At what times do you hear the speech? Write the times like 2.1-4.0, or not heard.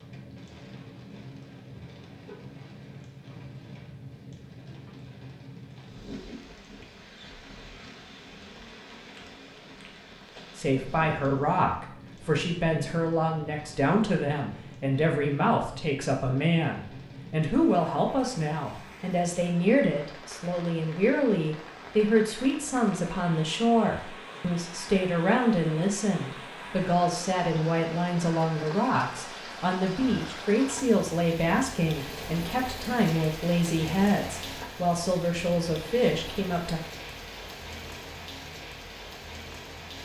10.6-36.8.